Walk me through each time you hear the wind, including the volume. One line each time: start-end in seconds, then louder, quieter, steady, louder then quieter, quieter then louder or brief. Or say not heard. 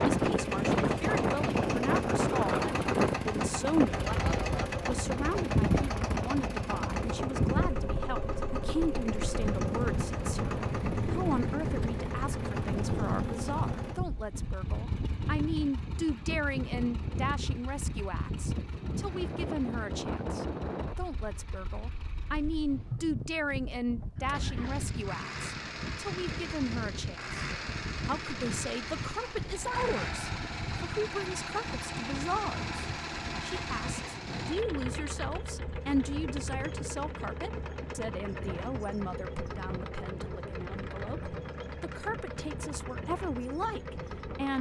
0.0-44.5 quieter.